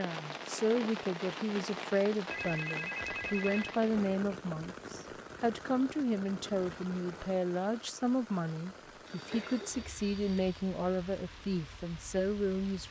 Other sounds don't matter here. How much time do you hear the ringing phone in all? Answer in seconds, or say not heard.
3 s.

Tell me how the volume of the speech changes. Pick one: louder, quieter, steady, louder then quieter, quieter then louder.
steady.